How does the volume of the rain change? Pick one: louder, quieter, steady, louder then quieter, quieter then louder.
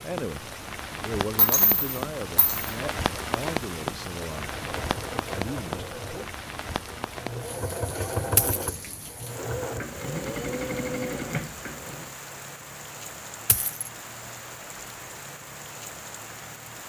quieter.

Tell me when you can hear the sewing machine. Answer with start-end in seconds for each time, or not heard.
4.3-12.1.